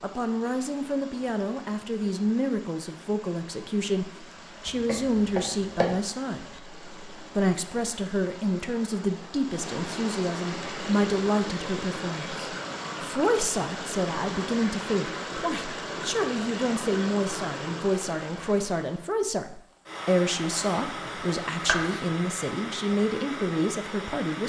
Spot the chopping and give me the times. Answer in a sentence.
The chopping can be heard from 4.7 to 6.0 s and from 20.6 to 22.1 s.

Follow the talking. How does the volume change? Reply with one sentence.
The volume of the talking stays about the same.